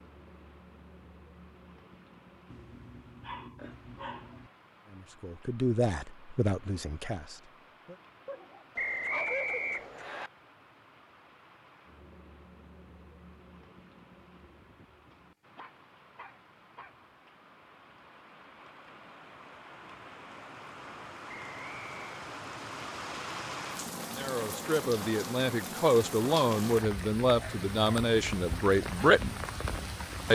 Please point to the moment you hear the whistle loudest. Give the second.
9 s.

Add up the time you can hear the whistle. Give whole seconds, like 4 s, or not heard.
2 s.